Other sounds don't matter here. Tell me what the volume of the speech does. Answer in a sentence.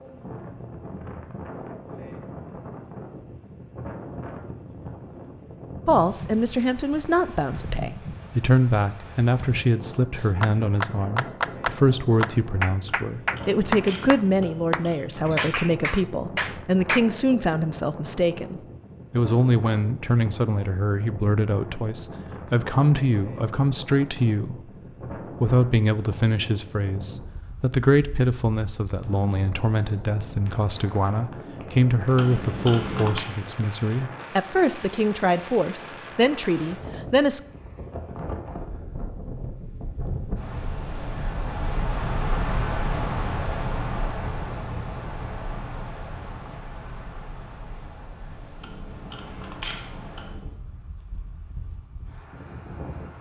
The loudness of the speech stays about the same.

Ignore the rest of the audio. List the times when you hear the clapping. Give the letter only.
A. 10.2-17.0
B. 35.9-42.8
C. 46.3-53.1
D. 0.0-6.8
A.